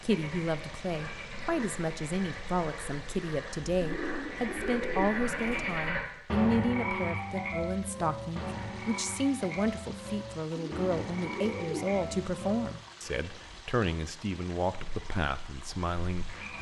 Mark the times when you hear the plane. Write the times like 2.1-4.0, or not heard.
not heard.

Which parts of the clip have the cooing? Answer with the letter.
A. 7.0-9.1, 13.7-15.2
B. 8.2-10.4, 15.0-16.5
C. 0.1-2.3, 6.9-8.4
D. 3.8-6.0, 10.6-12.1
D.